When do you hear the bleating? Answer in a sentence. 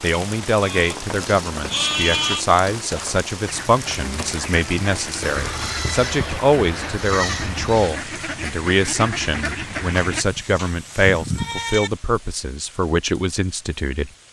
The bleating can be heard from 0.6 to 2.5 s, from 5.2 to 8.0 s and from 9.9 to 11.9 s.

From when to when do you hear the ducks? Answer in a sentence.
The ducks can be heard from 3.5 to 10.2 s.